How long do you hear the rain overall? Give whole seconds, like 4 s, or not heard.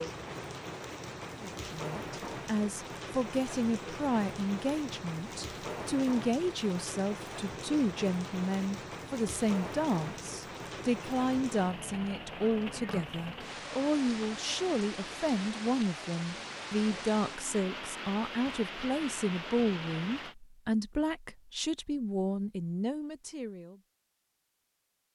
20 s.